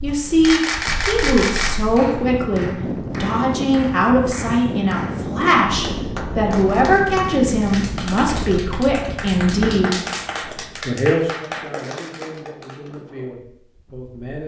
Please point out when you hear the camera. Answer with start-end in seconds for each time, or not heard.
0.4-1.9, 6.5-7.8, 11.8-12.4.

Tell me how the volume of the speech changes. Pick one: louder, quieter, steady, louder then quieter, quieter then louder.
quieter.